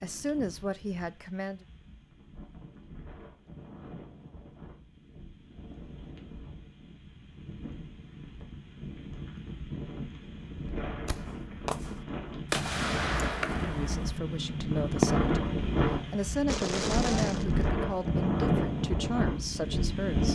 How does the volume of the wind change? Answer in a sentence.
The volume of the wind goes up.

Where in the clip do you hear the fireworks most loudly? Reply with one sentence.
The loudest moment of the fireworks is at 15 seconds.